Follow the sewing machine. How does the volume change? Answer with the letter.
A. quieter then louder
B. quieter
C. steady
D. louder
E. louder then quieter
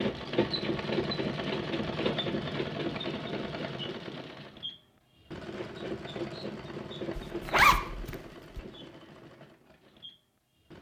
B.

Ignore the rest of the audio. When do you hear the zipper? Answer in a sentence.
The zipper can be heard from 7.2 to 8.6 s.